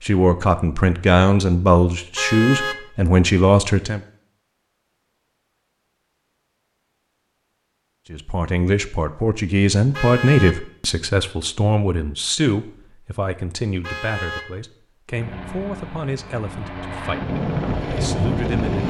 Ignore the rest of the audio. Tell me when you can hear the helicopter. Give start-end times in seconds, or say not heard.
15.1-18.8.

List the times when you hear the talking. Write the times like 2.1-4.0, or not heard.
0.0-4.0, 8.1-18.8.